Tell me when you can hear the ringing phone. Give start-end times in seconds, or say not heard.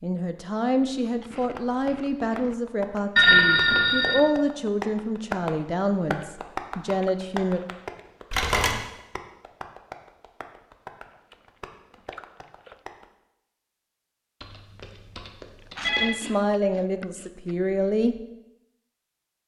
3.1-4.2, 8.3-8.8, 14.4-16.1.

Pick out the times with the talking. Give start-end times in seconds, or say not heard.
0.0-7.6, 16.0-18.2.